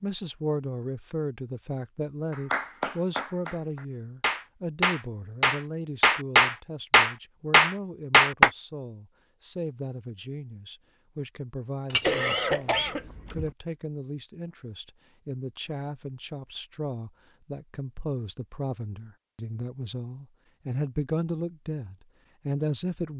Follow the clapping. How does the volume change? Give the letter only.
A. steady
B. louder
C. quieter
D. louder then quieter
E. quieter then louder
B.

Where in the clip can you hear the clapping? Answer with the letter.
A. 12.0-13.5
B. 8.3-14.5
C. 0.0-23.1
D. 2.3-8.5
D.